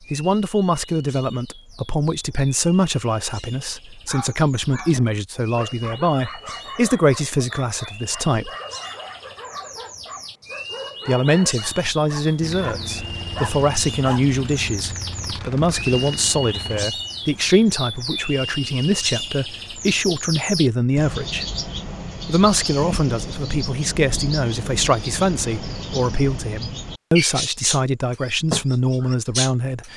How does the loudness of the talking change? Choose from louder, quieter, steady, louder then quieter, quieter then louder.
steady.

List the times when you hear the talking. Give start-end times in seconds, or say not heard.
0.1-8.5, 11.1-21.4, 22.2-29.9.